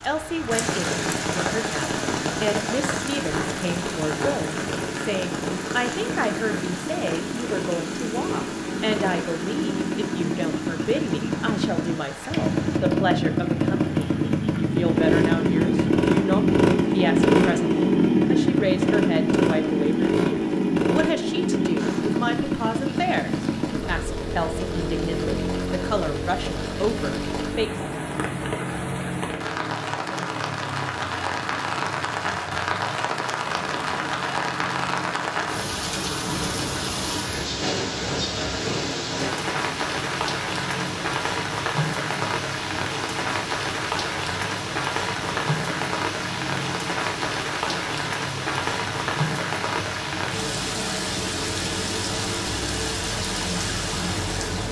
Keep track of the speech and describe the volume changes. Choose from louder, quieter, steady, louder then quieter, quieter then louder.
steady.